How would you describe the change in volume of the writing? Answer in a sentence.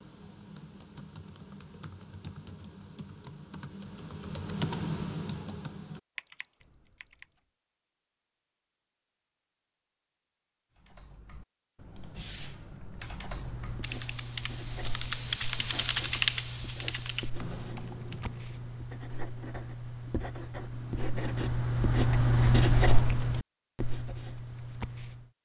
The volume of the writing goes up.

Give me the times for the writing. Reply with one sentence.
The writing can be heard from 13.3 to 25.3 s.